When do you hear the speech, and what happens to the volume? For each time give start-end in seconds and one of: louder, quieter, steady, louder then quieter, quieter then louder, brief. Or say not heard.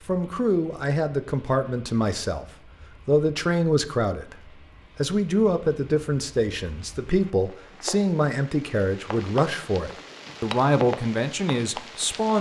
0.1-2.5 brief
3.0-4.3 brief
5.0-12.3 steady.